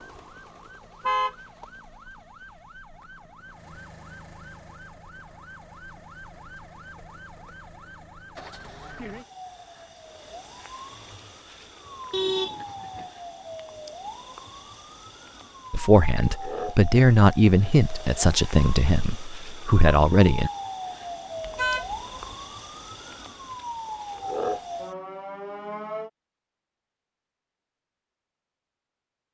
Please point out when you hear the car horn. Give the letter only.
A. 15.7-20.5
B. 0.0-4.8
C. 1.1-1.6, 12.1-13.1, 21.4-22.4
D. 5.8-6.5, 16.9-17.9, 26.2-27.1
C.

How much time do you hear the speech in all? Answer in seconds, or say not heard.
5 s.